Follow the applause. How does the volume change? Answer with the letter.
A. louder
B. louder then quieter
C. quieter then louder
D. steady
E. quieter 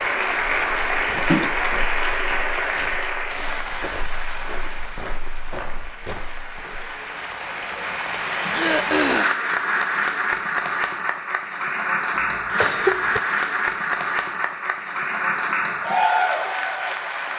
C.